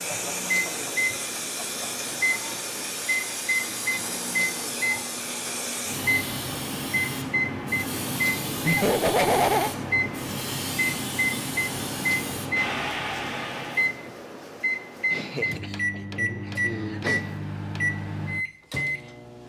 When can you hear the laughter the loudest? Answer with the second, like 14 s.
9 s.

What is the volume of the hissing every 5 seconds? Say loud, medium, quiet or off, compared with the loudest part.
loud, loud, loud, off.